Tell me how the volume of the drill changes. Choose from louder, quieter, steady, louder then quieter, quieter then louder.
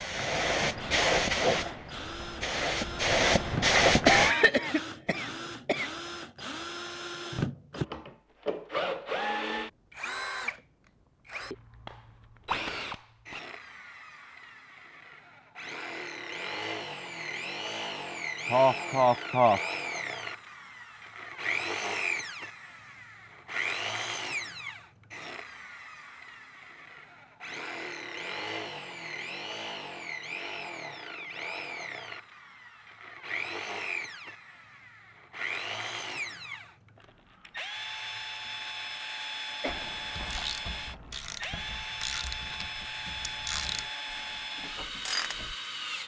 steady.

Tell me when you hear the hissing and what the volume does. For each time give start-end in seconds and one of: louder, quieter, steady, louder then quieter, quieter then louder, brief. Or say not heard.
0.0-4.3 quieter then louder.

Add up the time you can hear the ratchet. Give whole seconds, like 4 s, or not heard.
6 s.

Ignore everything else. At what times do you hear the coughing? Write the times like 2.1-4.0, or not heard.
4.0-5.9, 18.4-19.6, 39.6-40.3.